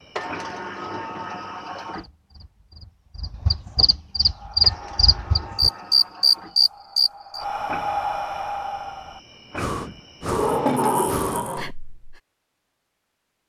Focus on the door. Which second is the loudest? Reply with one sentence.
The loudest moment of the door is at 11 seconds.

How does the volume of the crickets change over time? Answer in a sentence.
The volume of the crickets goes up, then down.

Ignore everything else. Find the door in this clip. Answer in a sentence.
You can hear the door from 0.1 to 2.1 s, from 4.6 to 6.5 s and from 10.2 to 11.8 s.